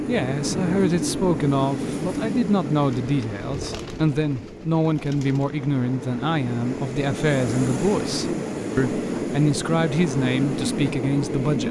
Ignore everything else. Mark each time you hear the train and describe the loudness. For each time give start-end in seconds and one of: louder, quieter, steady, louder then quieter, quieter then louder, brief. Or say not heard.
0.0-11.6 quieter then louder.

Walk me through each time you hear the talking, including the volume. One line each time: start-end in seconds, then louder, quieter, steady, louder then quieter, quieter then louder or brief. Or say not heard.
0.1-11.6 steady.